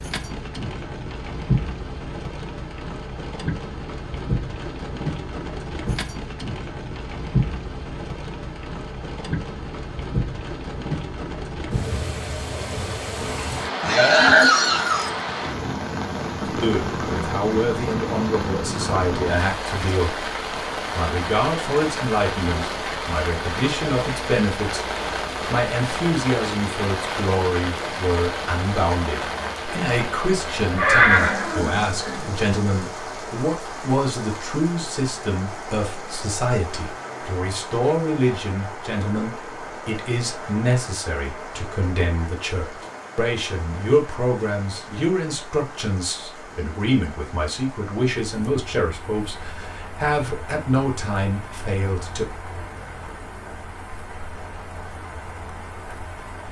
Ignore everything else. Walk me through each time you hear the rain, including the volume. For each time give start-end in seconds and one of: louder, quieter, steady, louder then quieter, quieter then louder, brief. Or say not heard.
0.0-56.4 quieter.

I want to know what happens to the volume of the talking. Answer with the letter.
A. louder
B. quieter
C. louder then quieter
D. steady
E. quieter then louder
D.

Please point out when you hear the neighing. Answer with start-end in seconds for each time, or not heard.
13.8-15.1, 30.8-32.3.